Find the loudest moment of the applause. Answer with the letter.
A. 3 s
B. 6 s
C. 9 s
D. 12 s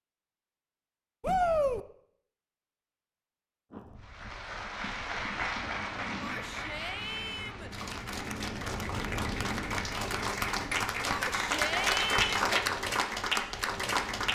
D.